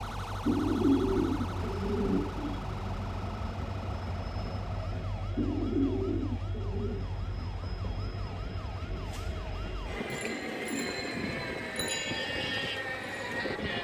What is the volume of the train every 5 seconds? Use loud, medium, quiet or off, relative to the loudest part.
medium, medium, loud.